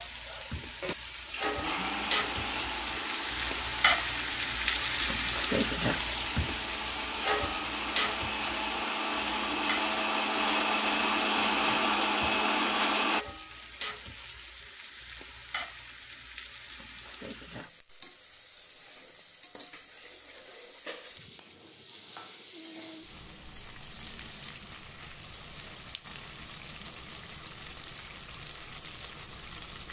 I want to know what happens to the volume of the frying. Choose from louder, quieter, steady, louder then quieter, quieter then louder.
quieter.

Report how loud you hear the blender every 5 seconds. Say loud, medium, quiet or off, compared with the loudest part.
medium, medium, loud, off, off, off.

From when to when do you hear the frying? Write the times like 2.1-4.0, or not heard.
0.0-29.8.